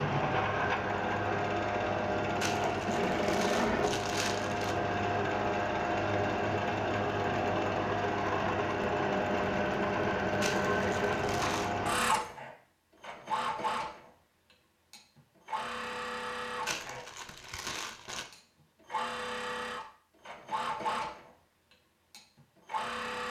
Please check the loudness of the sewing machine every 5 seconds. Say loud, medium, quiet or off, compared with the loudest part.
loud, loud, loud, medium, medium.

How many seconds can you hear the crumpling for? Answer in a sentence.
The crumpling can be heard for 5 seconds in total.